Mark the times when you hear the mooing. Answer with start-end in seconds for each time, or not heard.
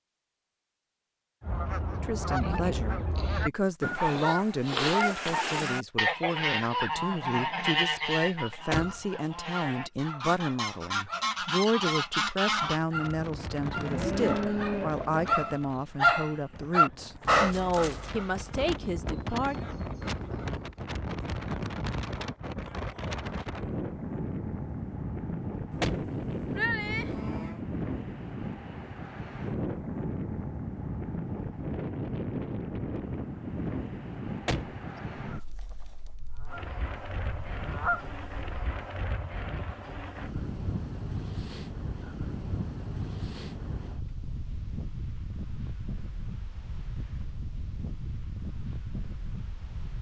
13.8-15.3, 25.7-27.6.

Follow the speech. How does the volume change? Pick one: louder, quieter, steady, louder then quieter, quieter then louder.
steady.